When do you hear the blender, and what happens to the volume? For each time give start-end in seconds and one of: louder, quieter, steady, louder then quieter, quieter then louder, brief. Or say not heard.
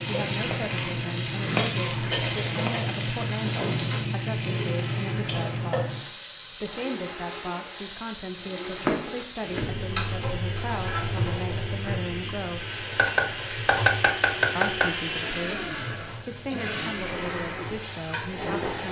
0.0-18.8 louder.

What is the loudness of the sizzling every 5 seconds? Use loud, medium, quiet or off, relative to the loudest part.
loud, loud, medium, medium.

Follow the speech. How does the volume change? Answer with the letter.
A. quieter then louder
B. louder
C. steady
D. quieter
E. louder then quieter
C.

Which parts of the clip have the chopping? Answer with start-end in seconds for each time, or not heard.
0.3-2.7, 8.8-9.8, 12.9-14.9.